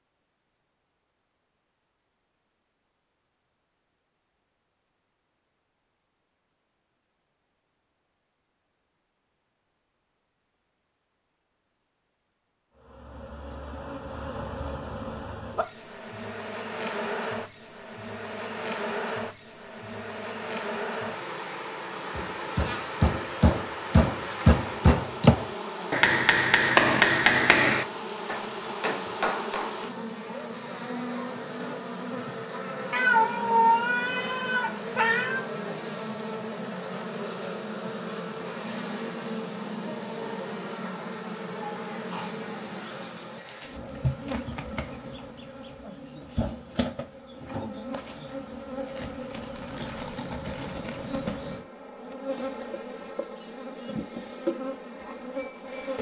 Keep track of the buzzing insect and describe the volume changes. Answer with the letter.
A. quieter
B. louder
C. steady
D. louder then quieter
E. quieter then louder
C.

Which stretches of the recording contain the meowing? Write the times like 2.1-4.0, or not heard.
32.9-35.5.